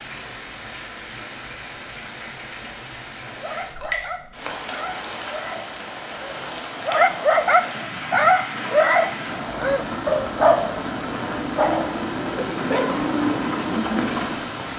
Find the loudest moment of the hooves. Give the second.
13 s.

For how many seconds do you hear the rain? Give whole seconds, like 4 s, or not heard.
15 s.